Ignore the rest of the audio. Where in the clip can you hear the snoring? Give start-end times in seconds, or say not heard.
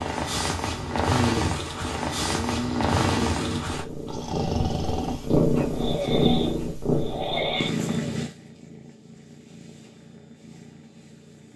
0.7-8.2.